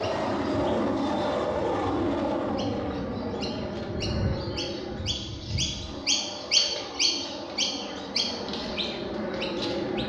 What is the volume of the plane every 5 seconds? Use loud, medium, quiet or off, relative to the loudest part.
loud, medium.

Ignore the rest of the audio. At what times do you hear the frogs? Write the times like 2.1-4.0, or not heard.
not heard.